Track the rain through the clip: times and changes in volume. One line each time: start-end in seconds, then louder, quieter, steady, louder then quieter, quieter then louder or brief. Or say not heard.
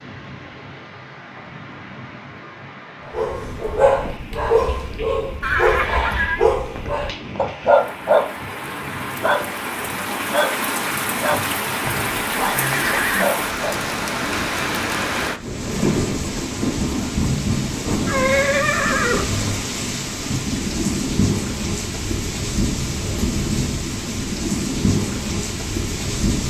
0.0-26.4 louder.